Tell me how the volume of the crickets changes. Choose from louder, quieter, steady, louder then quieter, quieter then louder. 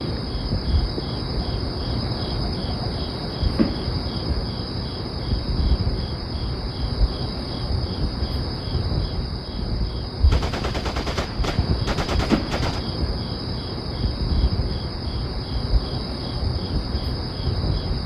steady.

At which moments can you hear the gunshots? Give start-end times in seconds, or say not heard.
10.2-12.8.